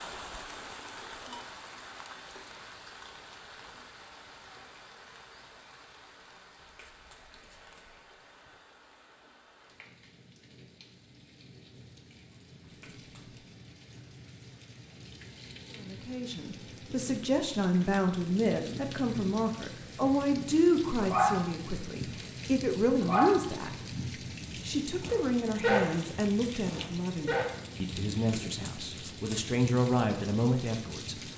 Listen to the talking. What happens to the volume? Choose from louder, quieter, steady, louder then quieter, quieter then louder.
steady.